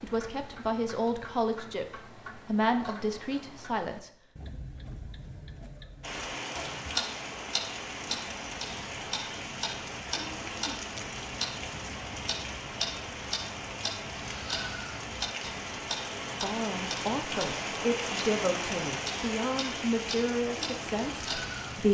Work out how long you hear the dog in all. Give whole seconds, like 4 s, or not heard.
not heard.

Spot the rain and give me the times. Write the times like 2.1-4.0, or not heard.
6.0-21.8.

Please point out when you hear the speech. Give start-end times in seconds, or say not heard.
0.0-4.1, 16.4-21.8.